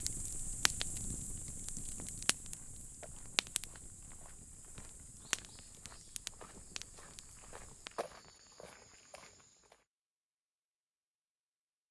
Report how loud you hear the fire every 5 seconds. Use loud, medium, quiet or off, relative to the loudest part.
loud, loud, off.